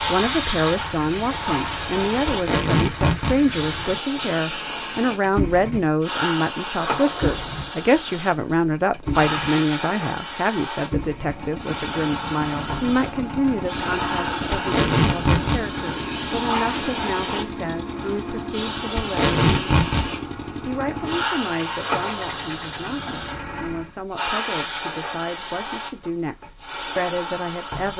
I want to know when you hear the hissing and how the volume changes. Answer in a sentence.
You can hear the hissing from 0.0 to 27.9 s, at a steady volume.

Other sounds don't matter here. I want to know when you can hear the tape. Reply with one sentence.
You can hear the tape from 2.2 to 3.4 s, from 14.5 to 15.7 s and from 18.9 to 20.1 s.